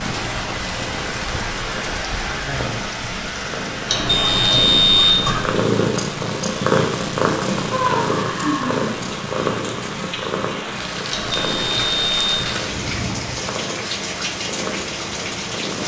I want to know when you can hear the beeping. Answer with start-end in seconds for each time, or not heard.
3.9-5.5, 11.1-12.4.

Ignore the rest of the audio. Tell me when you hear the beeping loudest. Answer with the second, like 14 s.
5 s.